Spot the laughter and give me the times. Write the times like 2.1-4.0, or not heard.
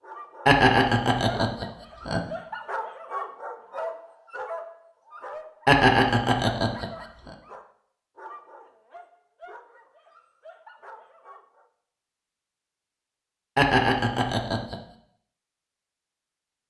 0.5-2.2, 5.7-7.3, 13.6-14.8.